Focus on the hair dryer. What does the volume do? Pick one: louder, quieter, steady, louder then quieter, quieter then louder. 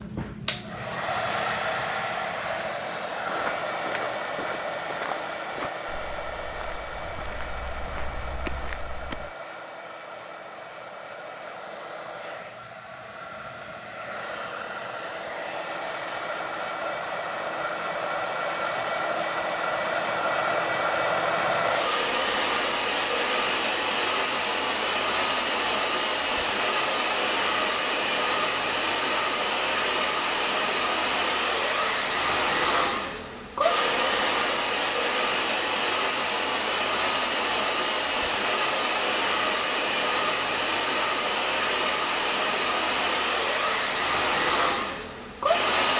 louder.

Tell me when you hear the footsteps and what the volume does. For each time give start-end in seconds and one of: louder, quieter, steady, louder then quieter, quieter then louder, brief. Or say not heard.
3.2-9.3 quieter then louder.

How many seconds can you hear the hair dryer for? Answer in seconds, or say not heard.
46 s.